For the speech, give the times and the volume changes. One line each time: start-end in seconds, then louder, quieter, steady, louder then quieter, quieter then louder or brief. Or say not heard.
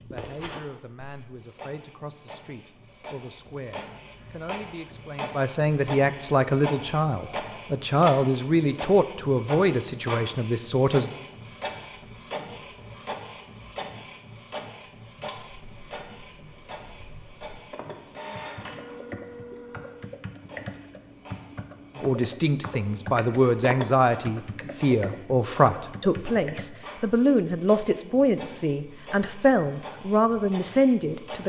0.0-11.1 louder
21.9-31.4 steady.